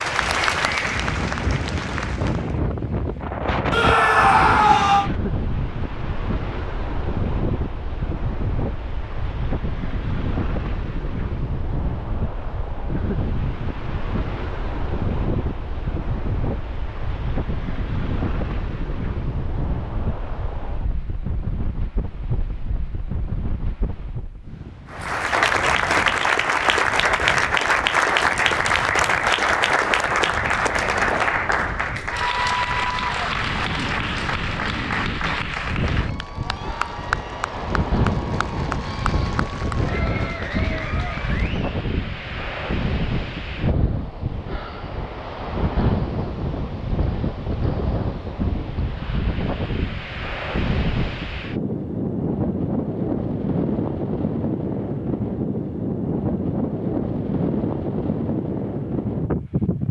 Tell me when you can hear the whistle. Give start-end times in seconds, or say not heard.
not heard.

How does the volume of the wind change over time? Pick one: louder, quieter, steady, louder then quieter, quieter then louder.
quieter then louder.